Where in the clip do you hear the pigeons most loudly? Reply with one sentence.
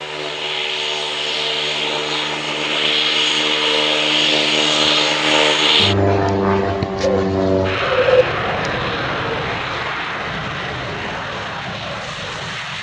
The volume of the pigeons peaks at 8 seconds.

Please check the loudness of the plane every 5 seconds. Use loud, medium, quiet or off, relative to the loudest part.
loud, loud, medium.